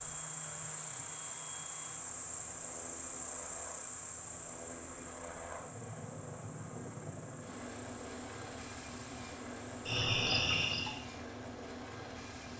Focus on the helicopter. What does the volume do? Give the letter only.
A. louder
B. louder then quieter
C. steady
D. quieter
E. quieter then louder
A.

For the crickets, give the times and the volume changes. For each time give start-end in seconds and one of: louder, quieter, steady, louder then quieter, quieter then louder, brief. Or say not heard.
0.0-11.0 quieter then louder.